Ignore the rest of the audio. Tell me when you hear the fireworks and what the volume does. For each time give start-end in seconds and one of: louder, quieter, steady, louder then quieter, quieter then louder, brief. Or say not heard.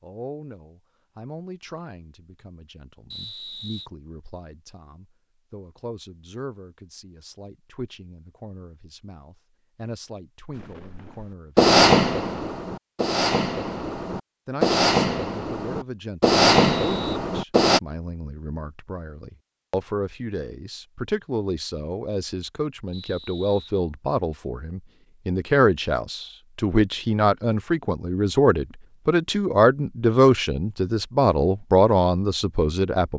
10.6-17.8 quieter then louder.